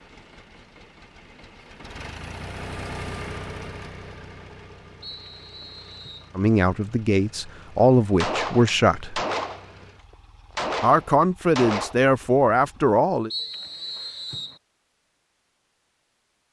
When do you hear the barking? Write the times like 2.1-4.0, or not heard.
not heard.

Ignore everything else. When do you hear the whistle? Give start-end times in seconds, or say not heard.
5.0-6.3, 13.3-14.6.